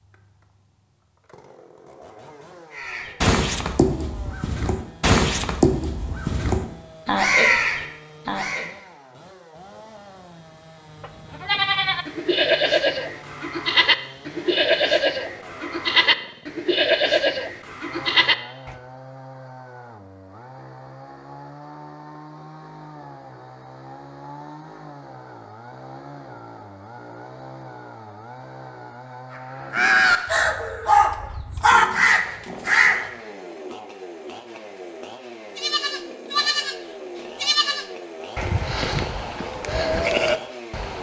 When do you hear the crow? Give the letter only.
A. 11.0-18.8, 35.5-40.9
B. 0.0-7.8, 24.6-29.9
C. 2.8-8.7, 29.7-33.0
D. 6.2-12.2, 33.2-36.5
C.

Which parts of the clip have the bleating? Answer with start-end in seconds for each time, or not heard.
11.0-18.8, 35.5-40.9.